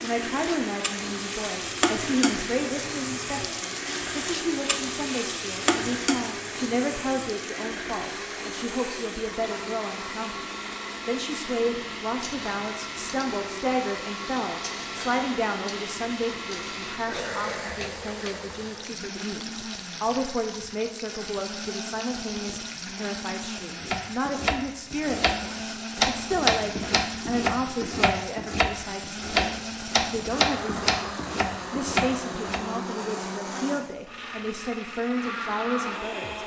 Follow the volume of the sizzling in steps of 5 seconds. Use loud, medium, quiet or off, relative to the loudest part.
loud, loud, medium, medium, medium, off, off, off.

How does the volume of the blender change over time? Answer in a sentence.
The loudness of the blender stays about the same.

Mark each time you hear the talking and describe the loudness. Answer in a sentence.
The talking can be heard from 0.0 to 36.4 s, at a steady volume.